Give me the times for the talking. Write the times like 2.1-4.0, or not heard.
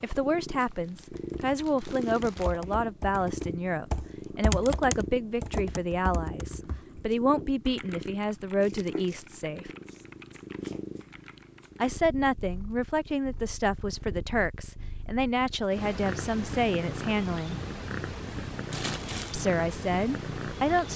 0.0-9.7, 11.8-17.6, 19.3-20.9.